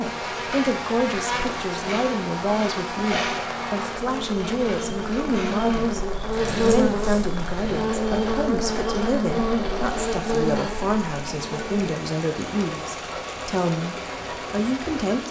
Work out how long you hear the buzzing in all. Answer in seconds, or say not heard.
12 s.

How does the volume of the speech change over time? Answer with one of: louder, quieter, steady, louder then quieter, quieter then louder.
steady.